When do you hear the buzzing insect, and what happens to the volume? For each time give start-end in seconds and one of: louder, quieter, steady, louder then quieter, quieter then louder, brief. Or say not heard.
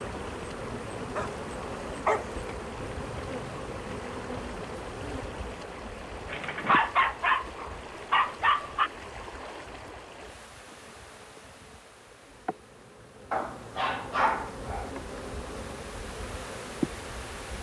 0.0-17.5 quieter then louder.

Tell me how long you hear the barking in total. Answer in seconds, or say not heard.
6 s.